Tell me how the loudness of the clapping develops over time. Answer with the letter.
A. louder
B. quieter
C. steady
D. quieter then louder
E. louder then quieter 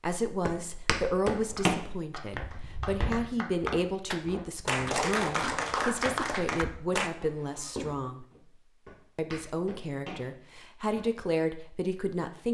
A.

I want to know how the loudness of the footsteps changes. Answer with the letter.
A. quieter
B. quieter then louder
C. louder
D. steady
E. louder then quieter
A.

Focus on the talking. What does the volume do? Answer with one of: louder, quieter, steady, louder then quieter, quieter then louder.
steady.